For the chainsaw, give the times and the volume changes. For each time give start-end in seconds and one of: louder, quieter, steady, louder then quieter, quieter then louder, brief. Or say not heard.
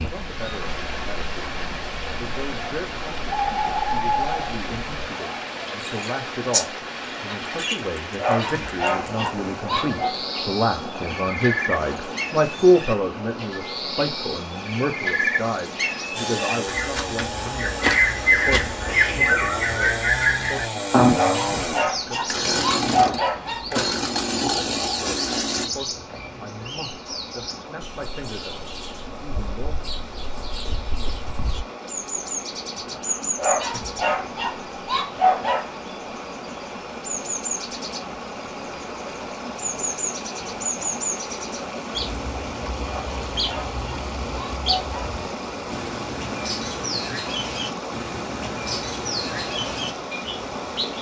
16.1-25.7 louder.